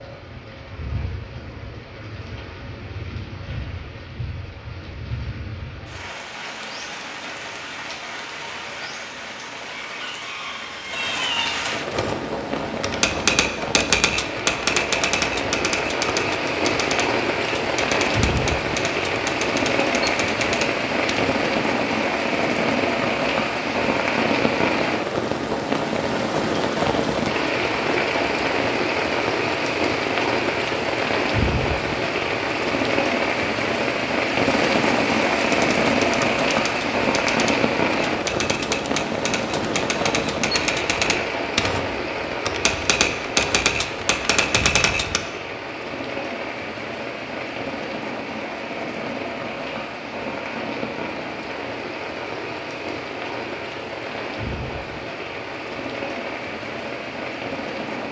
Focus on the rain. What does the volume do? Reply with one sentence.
The loudness of the rain goes up, then down.